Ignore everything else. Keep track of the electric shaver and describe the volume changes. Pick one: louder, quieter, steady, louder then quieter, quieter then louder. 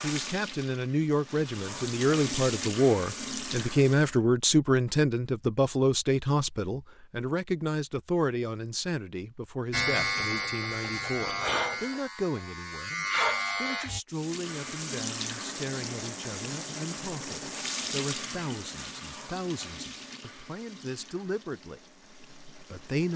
quieter then louder.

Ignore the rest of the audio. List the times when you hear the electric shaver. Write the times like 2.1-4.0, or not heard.
9.7-14.0.